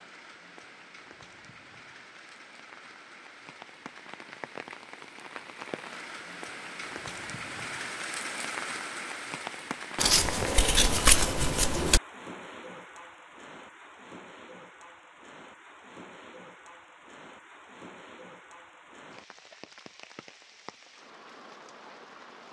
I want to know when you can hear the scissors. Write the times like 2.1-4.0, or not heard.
9.9-12.0.